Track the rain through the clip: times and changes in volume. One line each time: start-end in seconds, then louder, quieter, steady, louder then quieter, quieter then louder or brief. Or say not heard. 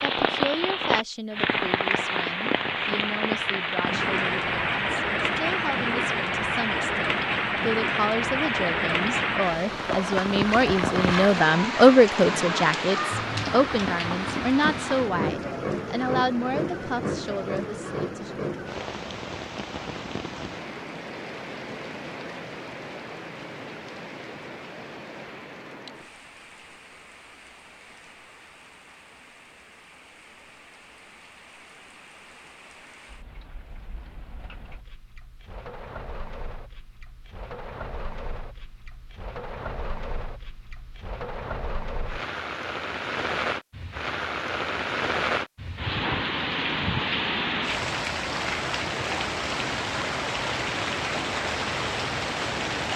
0.0-52.9 quieter then louder.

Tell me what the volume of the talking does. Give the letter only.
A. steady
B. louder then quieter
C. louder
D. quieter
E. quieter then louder
B.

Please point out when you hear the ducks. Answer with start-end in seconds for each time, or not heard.
not heard.